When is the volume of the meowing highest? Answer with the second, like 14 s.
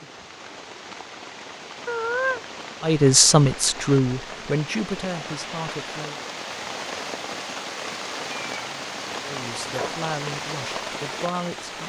2 s.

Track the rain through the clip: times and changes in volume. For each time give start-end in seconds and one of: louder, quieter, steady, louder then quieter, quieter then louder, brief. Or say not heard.
0.0-11.8 louder.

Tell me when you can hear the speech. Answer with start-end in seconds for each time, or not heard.
2.8-6.2, 9.2-11.8.